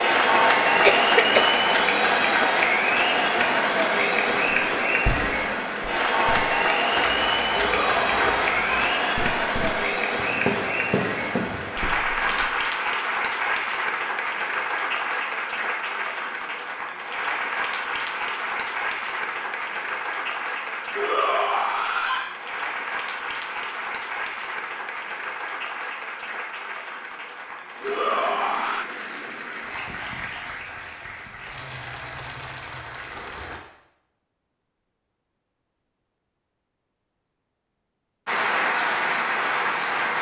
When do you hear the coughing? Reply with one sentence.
The coughing can be heard from 0.8 to 1.6 s.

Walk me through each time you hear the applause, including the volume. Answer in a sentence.
You can hear the applause from 0.0 to 33.6 s, getting quieter; and briefly from 38.2 to 40.1 s.